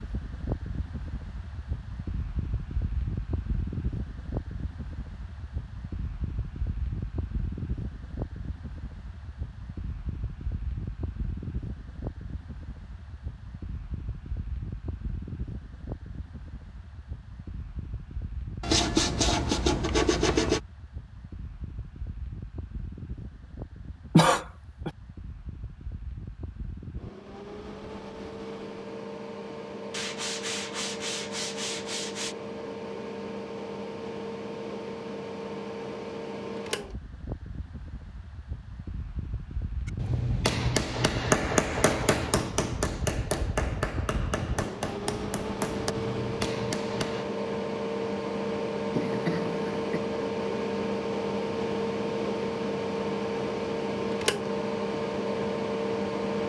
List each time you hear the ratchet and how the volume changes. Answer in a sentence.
You can't hear the ratchet here.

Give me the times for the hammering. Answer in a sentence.
You can hear the hammering from 39.9 to 47.2 s.